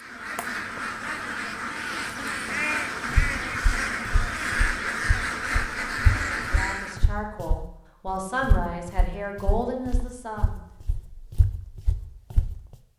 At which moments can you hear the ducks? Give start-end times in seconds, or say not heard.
0.0-7.0.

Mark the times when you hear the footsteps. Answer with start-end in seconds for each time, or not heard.
3.0-12.6.